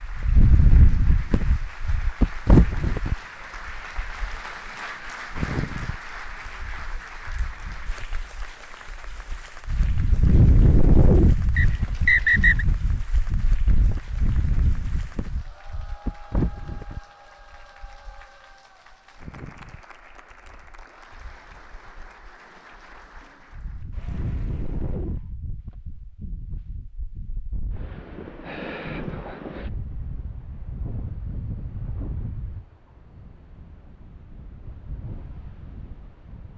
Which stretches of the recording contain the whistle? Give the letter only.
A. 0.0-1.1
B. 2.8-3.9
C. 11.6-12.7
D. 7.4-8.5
C.